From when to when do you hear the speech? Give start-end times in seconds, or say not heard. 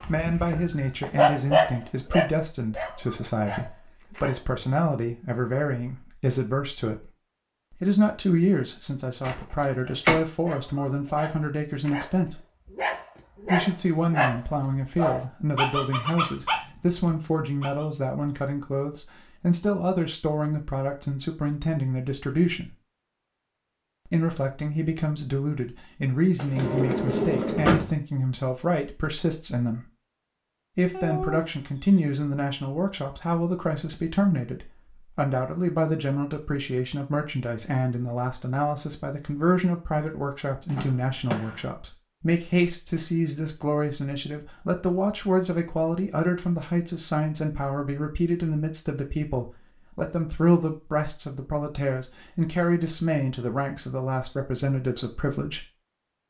0.1-7.1, 7.7-12.4, 13.4-22.8, 24.1-29.9, 30.8-55.6.